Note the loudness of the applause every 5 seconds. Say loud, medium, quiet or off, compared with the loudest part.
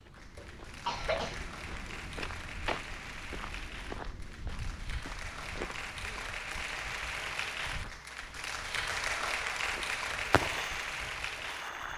medium, loud, loud.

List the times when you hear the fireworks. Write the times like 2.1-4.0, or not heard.
10.3-11.9.